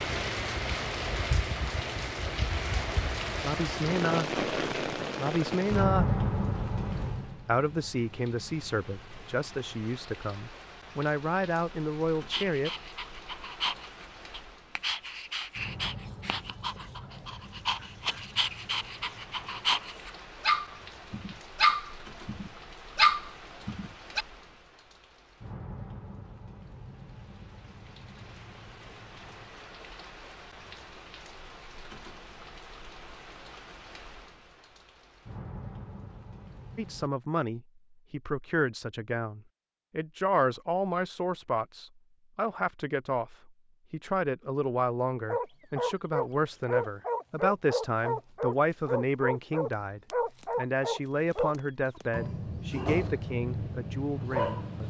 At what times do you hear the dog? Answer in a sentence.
The dog can be heard from 12.3 to 24.2 s and from 45.2 to 54.8 s.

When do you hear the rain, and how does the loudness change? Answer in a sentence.
The rain can be heard from 0.0 to 37.1 s, getting quieter.